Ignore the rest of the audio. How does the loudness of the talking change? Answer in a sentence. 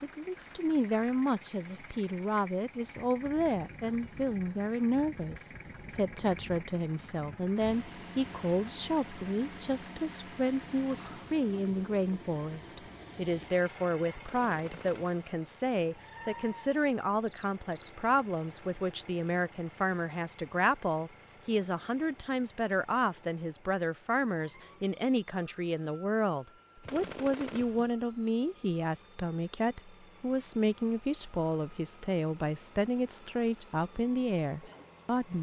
The loudness of the talking stays about the same.